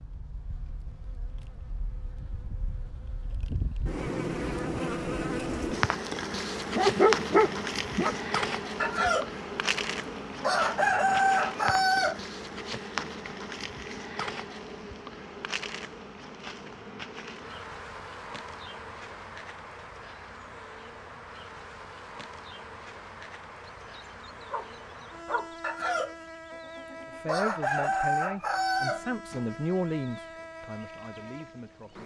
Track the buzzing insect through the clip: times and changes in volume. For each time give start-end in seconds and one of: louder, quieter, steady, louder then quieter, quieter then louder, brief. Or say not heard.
0.0-32.0 quieter.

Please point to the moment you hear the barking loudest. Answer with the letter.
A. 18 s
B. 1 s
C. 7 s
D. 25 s
C.